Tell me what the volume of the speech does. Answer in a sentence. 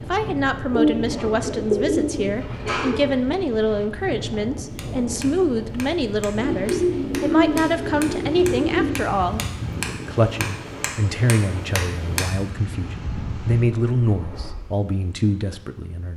The loudness of the speech stays about the same.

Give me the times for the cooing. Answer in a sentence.
The cooing can be heard from 0.7 to 3.1 s, from 6.3 to 9.0 s and from 13.1 to 14.7 s.